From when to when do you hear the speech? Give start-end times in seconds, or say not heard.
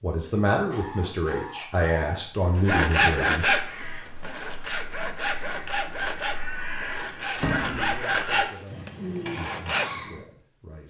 0.0-3.5, 7.8-10.8.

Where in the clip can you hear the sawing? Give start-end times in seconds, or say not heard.
2.6-9.9.